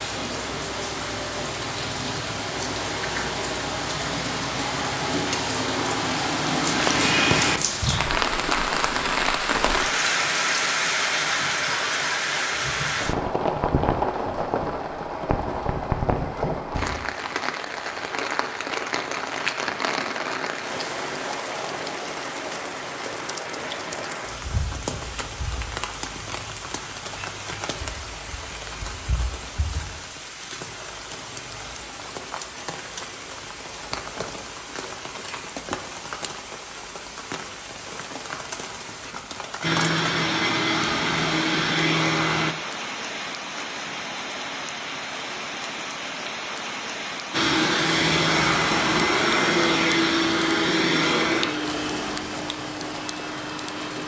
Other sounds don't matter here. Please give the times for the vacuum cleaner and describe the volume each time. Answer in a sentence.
You can hear the vacuum cleaner briefly from 39.6 to 42.5 s; and from 47.3 to 54.0 s, getting quieter.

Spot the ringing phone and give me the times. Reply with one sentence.
You can't hear the ringing phone here.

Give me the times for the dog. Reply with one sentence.
The dog can't be heard in this clip.